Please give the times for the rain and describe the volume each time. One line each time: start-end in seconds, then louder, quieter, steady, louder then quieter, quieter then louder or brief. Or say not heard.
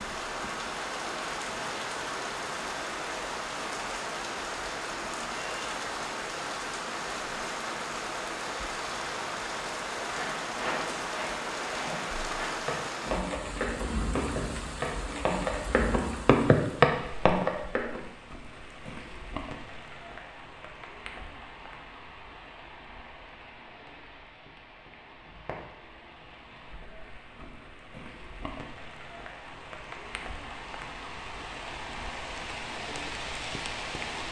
0.0-34.2 quieter then louder.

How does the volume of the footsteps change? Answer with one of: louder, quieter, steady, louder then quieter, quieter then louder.
louder.